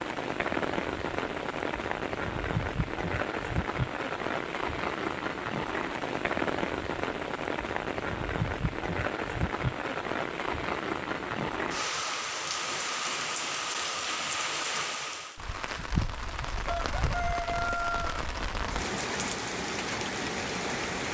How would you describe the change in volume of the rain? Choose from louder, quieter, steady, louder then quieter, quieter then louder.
steady.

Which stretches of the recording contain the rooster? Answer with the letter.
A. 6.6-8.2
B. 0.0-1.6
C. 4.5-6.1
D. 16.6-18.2
D.